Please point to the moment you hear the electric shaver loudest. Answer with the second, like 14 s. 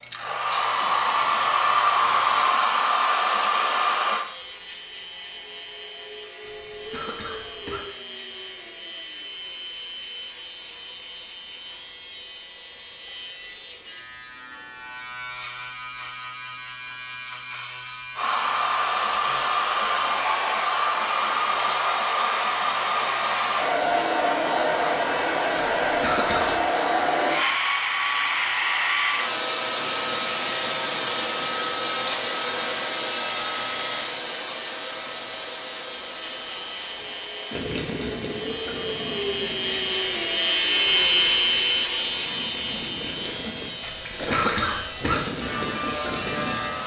41 s.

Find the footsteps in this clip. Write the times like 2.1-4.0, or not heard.
not heard.